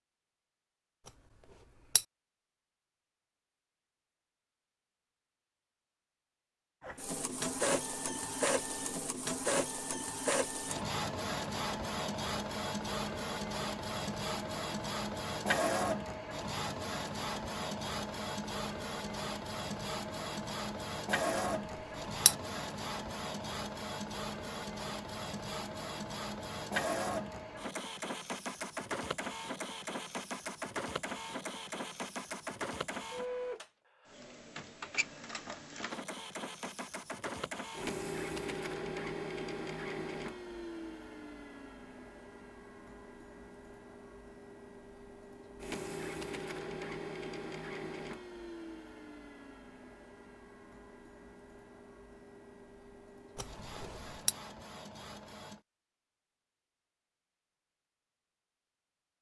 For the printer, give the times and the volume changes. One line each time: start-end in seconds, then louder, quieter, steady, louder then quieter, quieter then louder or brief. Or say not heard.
6.8-55.6 quieter.